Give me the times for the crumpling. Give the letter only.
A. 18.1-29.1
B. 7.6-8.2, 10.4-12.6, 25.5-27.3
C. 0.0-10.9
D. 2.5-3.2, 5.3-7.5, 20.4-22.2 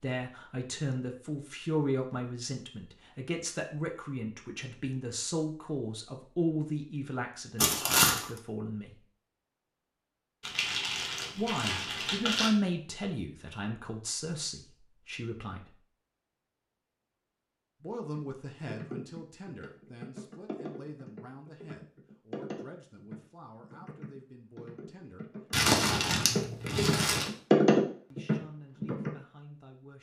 B.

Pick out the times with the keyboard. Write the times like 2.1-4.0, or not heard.
18.1-29.1.